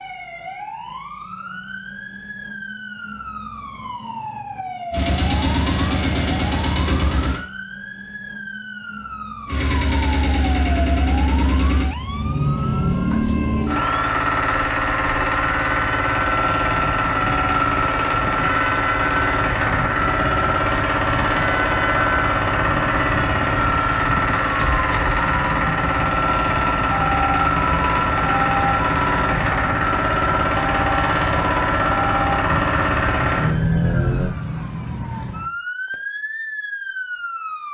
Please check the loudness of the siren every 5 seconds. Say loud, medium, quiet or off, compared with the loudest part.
medium, medium, medium, loud, loud, loud, loud, loud.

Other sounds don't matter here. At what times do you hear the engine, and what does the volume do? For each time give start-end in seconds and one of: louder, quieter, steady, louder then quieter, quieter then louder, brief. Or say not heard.
4.9-7.4 brief
9.4-34.3 steady.